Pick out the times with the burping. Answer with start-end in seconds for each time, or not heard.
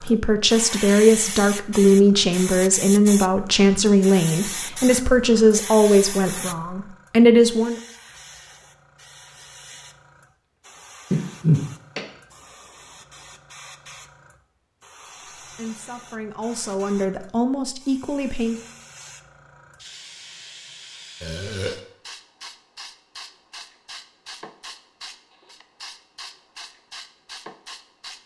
11.1-12.1, 21.2-21.8.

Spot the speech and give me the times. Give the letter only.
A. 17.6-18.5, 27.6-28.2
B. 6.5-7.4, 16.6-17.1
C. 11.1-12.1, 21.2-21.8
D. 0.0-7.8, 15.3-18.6
D.